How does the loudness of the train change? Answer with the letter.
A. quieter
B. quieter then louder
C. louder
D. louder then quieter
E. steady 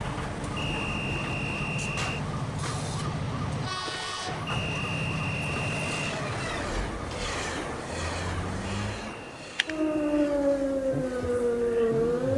A.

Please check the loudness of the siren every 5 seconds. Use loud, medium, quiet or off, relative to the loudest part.
quiet, medium, loud.